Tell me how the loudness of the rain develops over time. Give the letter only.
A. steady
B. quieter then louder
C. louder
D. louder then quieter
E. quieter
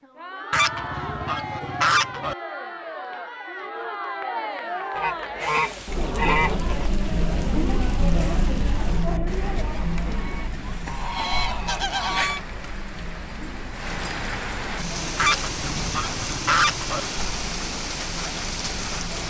C.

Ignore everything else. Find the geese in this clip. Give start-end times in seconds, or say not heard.
0.5-2.4, 5.0-6.9, 9.8-12.4, 15.2-17.0.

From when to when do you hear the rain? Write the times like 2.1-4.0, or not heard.
5.4-19.2.